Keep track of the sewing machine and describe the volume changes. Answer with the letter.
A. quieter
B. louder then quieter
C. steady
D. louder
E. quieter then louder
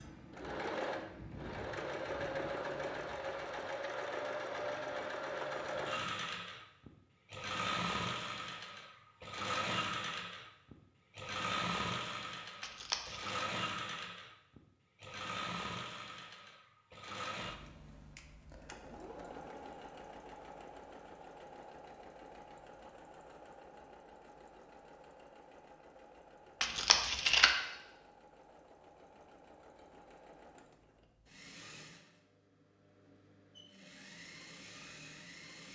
A.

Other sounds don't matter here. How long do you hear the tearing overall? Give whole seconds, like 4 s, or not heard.
2 s.